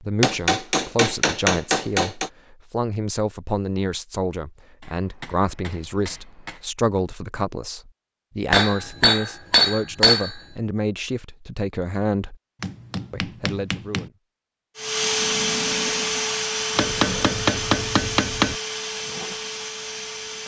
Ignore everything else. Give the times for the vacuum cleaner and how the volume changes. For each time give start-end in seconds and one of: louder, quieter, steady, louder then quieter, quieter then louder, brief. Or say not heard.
14.8-20.4 quieter.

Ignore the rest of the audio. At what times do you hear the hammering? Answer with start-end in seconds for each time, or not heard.
0.2-2.3, 4.8-6.6, 8.5-10.3, 12.6-14.1, 16.8-18.6.